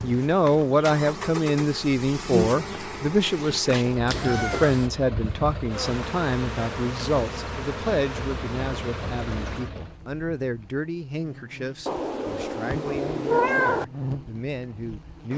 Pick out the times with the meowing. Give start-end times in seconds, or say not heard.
4.0-4.9, 11.8-13.8.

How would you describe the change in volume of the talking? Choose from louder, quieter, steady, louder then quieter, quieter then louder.
quieter.